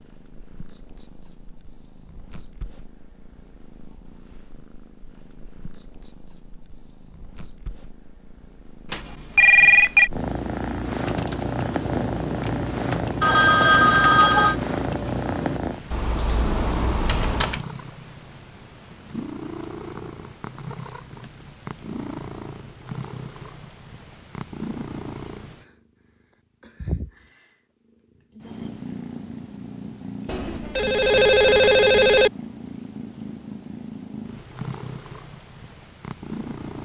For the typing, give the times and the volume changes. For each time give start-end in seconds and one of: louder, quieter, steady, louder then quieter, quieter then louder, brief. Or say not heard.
10.9-17.6 steady.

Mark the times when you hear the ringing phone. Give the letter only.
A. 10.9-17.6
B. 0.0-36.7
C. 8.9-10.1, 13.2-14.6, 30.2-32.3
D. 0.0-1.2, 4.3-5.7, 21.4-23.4
C.